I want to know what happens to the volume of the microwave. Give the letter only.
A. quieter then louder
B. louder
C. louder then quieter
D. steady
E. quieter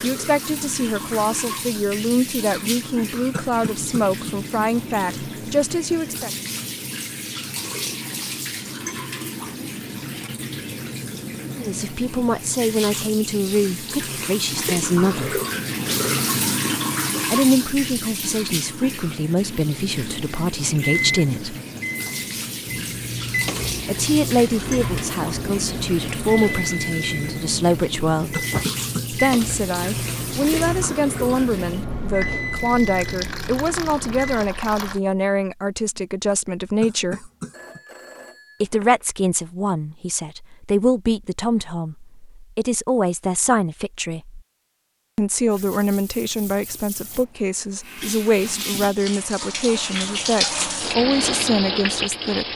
D.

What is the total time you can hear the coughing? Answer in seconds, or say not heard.
3 s.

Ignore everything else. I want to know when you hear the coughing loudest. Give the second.
29 s.